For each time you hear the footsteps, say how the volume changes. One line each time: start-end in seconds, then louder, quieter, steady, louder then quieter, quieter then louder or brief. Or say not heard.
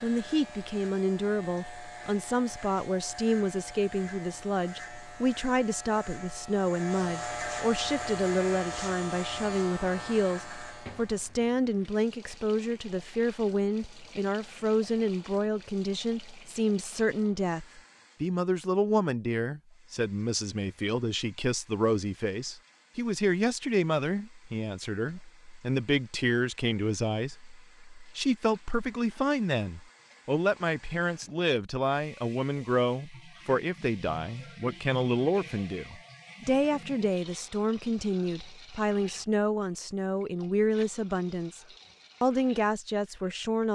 not heard.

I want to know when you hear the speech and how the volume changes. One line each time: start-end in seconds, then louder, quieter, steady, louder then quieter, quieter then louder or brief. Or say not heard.
0.0-41.6 steady
42.2-43.6 brief.